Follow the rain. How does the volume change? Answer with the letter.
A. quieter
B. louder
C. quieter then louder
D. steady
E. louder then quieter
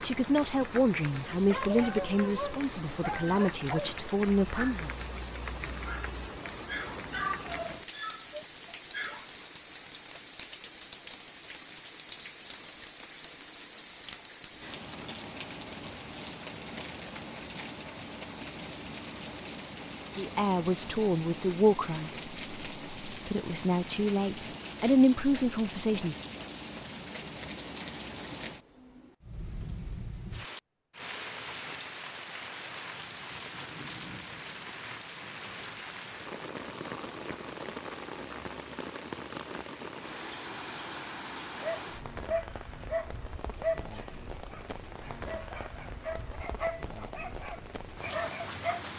D.